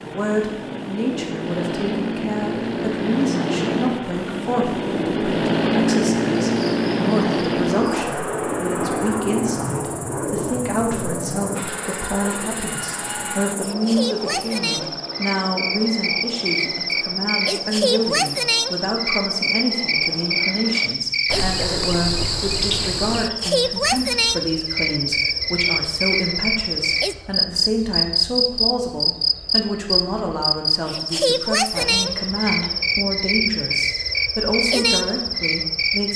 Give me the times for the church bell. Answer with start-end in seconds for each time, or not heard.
not heard.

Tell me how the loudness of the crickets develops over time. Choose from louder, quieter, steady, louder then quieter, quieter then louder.
louder.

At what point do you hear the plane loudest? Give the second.
6 s.